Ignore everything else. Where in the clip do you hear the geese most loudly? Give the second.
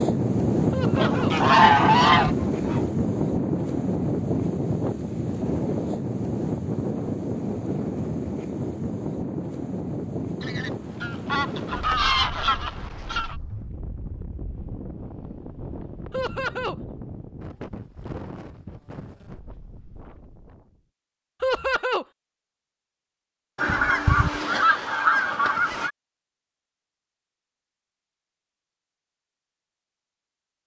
2 s.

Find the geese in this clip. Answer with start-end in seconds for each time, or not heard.
0.9-2.8, 10.4-13.3, 23.6-25.9.